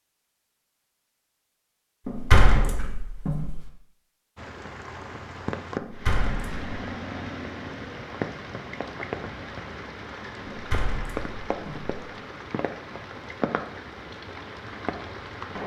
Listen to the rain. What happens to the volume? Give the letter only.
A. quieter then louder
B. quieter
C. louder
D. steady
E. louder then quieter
D.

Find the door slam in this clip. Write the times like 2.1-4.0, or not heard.
2.0-3.6, 5.8-6.7, 10.4-11.9.